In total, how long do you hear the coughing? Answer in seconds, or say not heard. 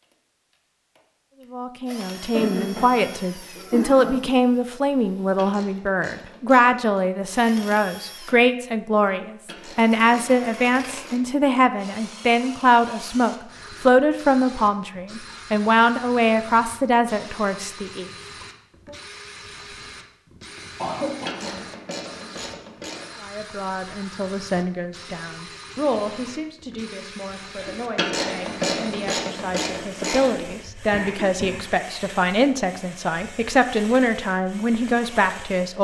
4 s.